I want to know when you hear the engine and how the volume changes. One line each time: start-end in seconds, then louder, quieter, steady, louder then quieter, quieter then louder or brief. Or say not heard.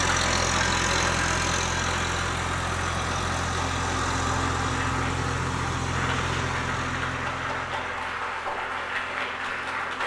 0.0-10.0 quieter.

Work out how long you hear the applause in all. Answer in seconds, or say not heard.
10 s.